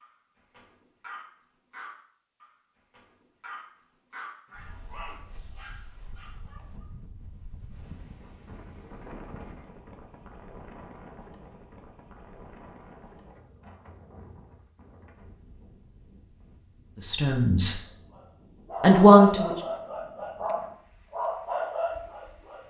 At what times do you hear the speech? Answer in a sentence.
You can hear the speech from 17.0 to 17.8 s and from 18.8 to 19.6 s.